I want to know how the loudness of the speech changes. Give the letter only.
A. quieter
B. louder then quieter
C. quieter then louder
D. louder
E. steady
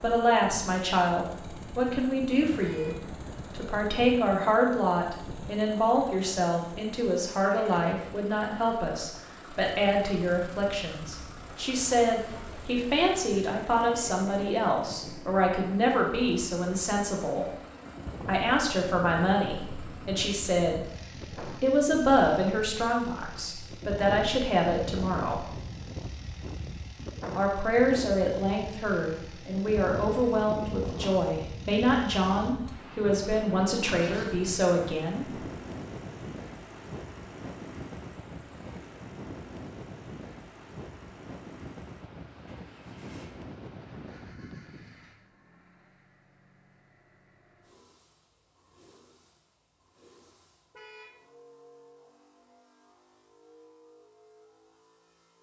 E.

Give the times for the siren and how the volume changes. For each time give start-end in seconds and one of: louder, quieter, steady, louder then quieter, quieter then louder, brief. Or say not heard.
not heard.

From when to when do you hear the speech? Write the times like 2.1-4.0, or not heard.
0.0-17.4, 18.2-25.4, 27.4-35.2.